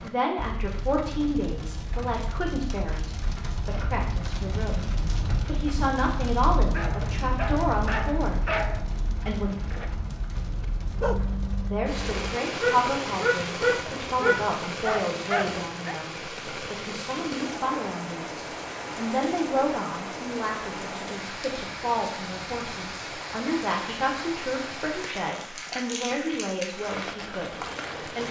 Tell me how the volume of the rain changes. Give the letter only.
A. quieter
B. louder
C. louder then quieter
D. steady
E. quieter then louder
D.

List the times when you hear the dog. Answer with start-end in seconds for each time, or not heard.
6.7-8.9, 9.6-15.9.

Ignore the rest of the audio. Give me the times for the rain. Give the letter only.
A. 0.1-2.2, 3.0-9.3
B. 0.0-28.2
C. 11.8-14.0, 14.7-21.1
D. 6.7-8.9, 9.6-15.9
B.